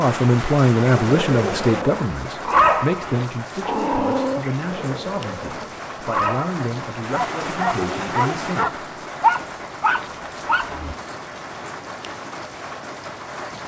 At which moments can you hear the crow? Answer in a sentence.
You can't hear the crow here.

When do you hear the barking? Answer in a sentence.
You can hear the barking from 1.0 to 10.9 s.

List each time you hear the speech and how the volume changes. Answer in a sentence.
The speech can be heard from 0.0 to 9.4 s, getting quieter.